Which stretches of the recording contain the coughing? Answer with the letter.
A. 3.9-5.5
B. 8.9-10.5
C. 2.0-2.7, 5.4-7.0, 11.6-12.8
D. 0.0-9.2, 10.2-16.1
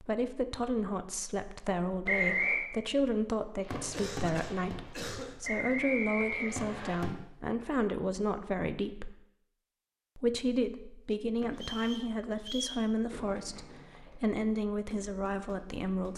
A.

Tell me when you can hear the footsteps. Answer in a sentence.
You can't hear the footsteps here.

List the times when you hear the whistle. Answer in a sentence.
You can hear the whistle from 2.0 to 2.7 s, from 5.4 to 7.0 s and from 11.6 to 12.8 s.